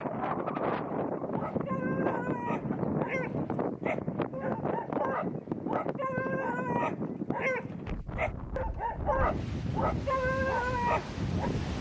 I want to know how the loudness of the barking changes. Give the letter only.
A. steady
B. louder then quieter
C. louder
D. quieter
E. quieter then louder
C.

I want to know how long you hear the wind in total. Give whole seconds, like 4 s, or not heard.
12 s.